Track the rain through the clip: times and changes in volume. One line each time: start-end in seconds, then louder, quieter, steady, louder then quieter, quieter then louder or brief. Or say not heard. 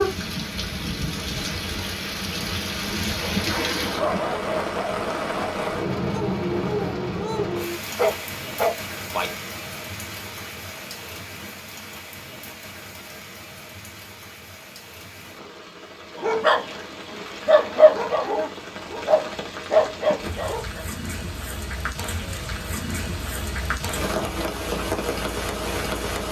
0.0-26.2 quieter then louder.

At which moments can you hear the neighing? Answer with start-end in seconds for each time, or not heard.
3.4-4.1.